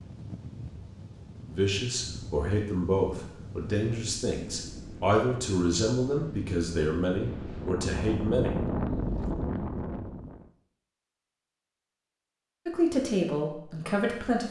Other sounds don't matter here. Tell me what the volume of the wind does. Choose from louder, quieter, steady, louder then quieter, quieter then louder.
louder.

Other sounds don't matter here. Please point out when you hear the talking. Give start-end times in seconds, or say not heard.
1.5-8.5, 12.7-14.4.